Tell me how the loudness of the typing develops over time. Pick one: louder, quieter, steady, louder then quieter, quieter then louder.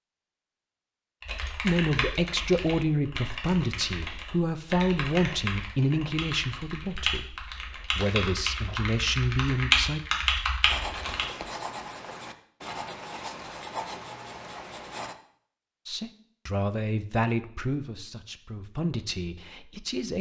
louder.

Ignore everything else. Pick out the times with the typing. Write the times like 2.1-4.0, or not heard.
1.2-11.2.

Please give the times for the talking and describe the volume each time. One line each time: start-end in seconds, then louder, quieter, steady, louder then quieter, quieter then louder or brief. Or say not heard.
1.6-10.0 quieter then louder
15.8-20.1 quieter.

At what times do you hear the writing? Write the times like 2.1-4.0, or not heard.
10.7-15.2.